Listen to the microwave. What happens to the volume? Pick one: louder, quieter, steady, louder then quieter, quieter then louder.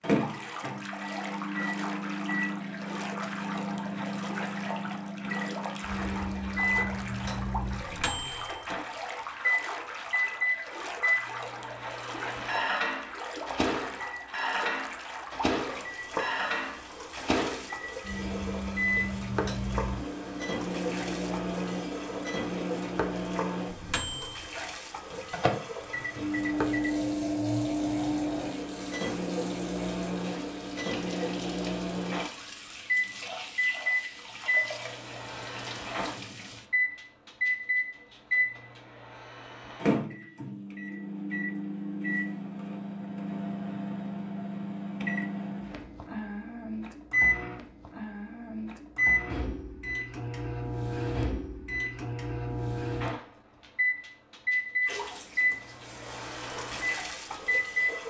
steady.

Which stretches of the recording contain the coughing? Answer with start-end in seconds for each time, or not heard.
not heard.